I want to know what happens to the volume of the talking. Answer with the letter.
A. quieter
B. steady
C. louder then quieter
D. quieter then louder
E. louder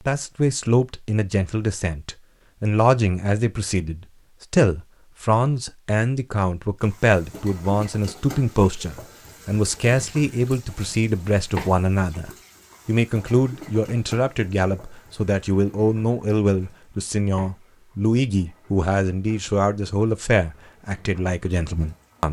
B.